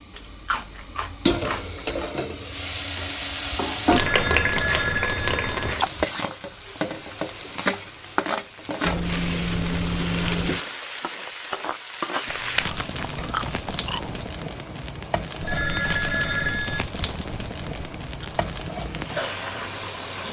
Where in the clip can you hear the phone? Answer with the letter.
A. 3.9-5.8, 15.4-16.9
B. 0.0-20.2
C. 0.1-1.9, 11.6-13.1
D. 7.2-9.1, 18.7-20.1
A.